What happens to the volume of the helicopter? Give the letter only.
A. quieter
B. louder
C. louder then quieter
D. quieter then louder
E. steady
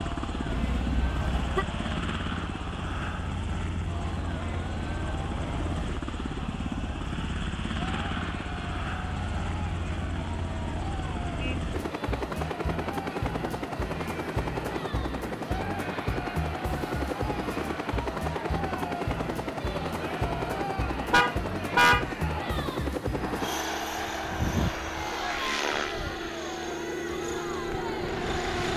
E.